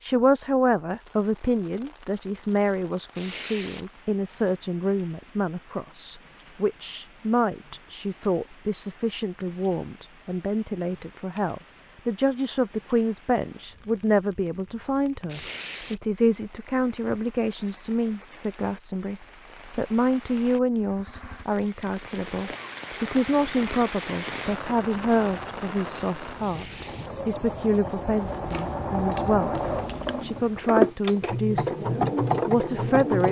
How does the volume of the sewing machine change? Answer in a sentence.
The loudness of the sewing machine goes up.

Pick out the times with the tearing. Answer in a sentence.
You can hear the tearing from 3.1 to 3.9 s, from 15.2 to 16.0 s and from 26.4 to 27.1 s.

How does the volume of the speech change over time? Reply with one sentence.
The volume of the speech stays about the same.